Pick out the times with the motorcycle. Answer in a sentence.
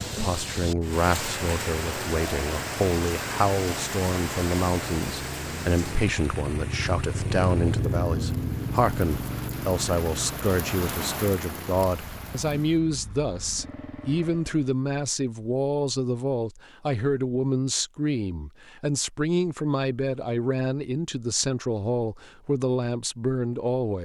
The motorcycle can be heard from 0.0 to 14.7 s.